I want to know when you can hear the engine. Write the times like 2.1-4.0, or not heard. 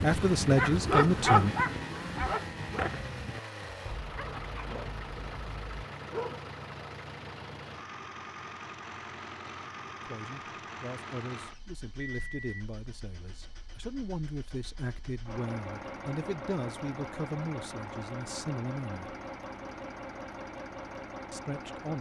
0.0-21.9.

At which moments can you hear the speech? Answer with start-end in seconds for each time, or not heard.
0.0-1.6, 10.1-19.1, 21.3-21.9.